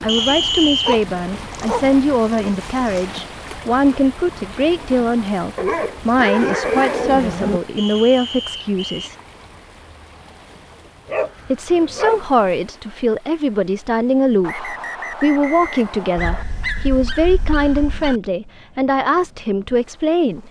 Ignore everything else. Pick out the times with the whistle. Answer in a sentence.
The whistle can be heard from 0.1 to 1.0 s, from 7.8 to 9.1 s and from 14.4 to 16.4 s.